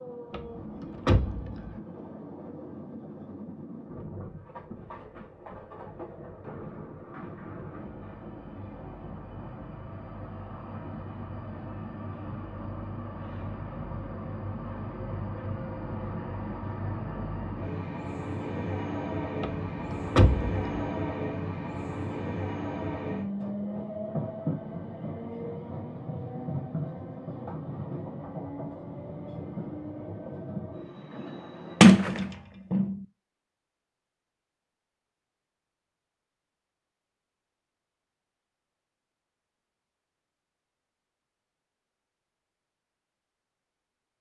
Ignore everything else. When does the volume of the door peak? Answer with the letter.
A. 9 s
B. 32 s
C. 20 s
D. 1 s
B.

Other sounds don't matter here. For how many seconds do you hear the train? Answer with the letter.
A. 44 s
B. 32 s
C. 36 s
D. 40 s
B.